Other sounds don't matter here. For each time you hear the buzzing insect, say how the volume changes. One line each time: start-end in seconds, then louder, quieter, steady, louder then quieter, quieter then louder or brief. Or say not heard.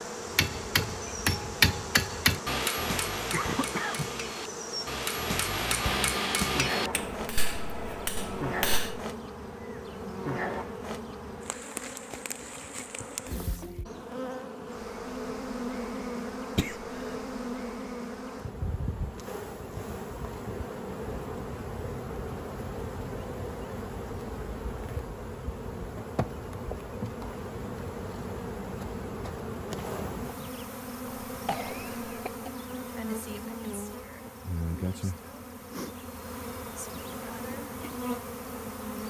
0.0-39.0 steady.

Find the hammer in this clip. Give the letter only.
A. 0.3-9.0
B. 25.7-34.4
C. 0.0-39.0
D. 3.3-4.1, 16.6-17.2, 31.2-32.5
A.